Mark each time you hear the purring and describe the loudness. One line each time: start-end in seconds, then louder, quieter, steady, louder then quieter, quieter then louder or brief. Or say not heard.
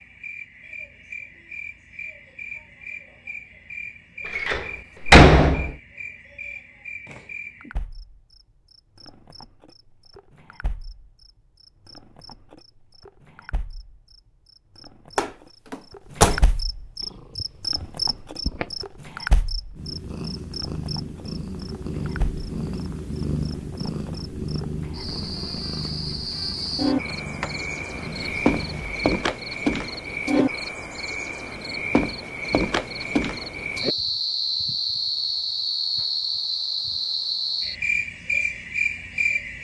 17.0-28.9 louder then quieter.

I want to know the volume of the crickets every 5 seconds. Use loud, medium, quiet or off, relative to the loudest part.
quiet, quiet, quiet, medium, quiet, loud, loud, loud.